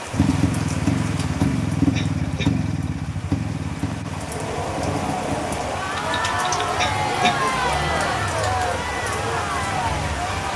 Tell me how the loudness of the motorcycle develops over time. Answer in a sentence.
The volume of the motorcycle goes down.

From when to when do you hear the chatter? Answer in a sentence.
You can hear the chatter from 4.2 to 10.5 s.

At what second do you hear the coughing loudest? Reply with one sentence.
The loudest moment of the coughing is at 7 seconds.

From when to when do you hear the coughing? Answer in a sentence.
The coughing can be heard from 1.9 to 2.6 s and from 6.8 to 7.5 s.